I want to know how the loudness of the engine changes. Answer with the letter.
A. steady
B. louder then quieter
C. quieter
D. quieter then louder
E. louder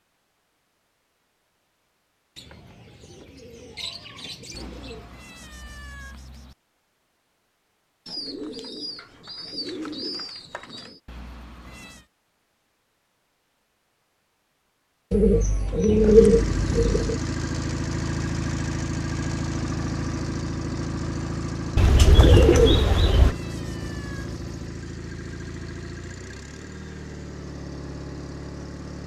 C.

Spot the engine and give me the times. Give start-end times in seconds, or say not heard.
15.9-29.0.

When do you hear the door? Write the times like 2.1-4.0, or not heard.
not heard.